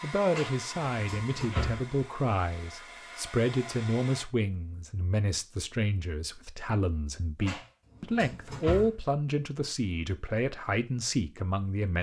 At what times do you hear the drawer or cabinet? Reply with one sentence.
The drawer or cabinet can be heard from 0.3 to 1.8 s and from 7.4 to 8.9 s.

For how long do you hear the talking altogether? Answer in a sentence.
The talking can be heard for 12 seconds in total.